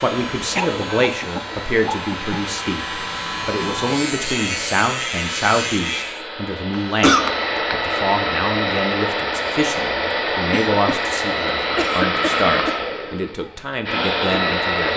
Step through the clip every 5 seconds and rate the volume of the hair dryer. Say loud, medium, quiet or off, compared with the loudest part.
medium, loud, loud.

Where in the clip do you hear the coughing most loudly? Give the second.
7 s.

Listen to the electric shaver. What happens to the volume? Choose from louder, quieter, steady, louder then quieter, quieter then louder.
louder.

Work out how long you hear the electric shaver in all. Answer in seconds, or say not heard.
6 s.